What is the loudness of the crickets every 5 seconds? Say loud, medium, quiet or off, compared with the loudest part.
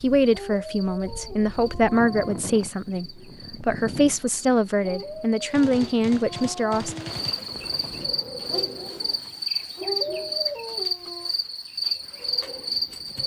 quiet, loud, loud.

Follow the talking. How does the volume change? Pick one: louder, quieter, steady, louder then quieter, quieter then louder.
steady.